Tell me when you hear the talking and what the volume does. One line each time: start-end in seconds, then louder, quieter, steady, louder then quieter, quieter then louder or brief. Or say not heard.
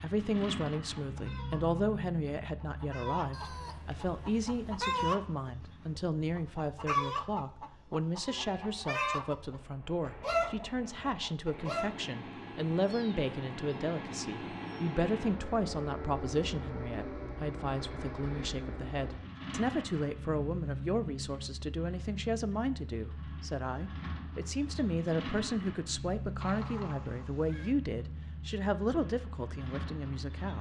0.0-30.5 steady.